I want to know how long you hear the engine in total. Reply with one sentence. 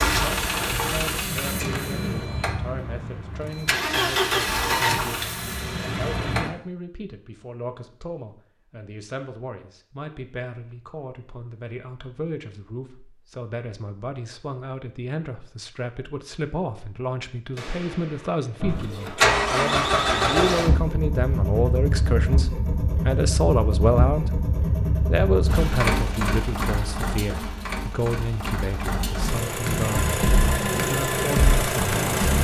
The engine can be heard for 20 seconds in total.